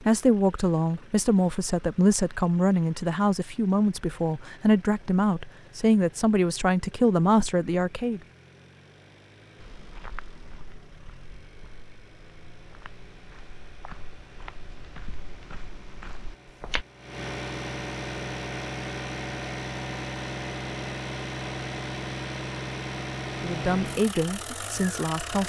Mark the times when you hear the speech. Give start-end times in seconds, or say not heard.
0.0-8.2, 23.2-25.4.